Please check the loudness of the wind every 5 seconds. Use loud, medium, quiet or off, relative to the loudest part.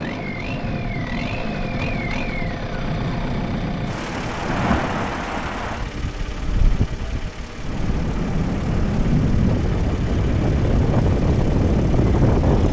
medium, medium, loud.